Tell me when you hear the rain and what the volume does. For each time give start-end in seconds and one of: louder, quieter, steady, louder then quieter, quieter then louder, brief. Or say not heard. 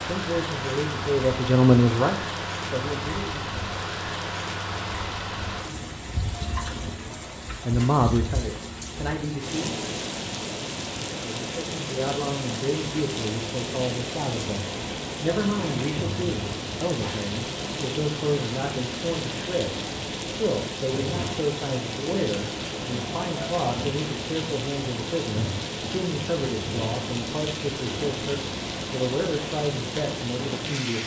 0.0-31.0 steady.